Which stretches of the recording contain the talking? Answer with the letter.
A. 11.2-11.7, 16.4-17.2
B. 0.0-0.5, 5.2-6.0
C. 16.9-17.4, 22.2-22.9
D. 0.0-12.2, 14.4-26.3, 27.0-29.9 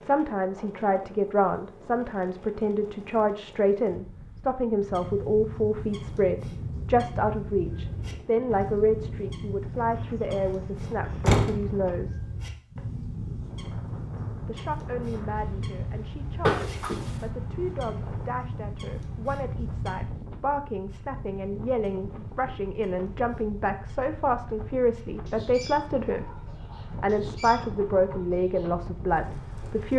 D.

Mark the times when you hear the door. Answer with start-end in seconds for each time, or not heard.
11.2-11.7, 16.4-17.2.